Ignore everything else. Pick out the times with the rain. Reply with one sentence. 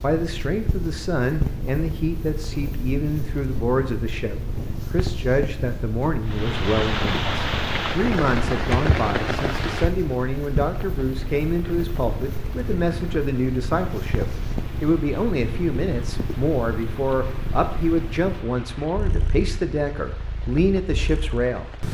The rain can be heard from 6.2 to 21.8 s.